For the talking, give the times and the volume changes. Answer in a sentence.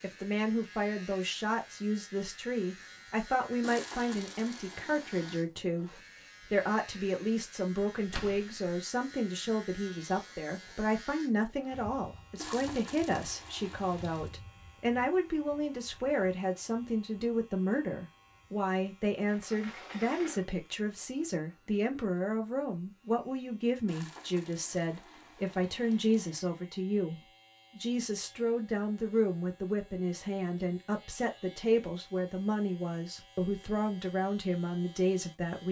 You can hear the talking from 0.0 to 35.6 s, at a steady volume.